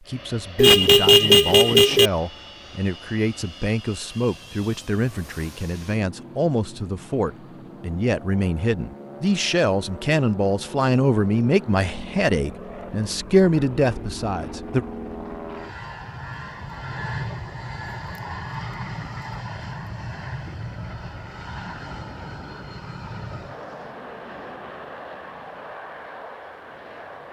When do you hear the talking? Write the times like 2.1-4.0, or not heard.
0.0-14.8.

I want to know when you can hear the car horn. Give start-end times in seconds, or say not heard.
0.6-2.1.